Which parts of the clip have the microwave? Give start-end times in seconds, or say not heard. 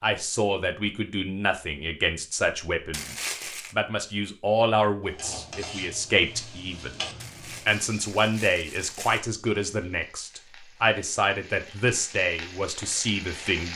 not heard.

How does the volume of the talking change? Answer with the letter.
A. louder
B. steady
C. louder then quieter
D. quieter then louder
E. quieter
B.